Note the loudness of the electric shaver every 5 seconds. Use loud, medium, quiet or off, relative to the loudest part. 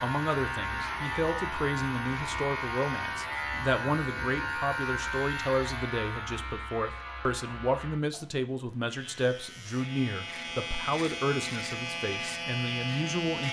loud, medium, loud.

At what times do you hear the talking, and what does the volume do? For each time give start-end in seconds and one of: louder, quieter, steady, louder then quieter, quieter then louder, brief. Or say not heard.
0.0-13.4 steady.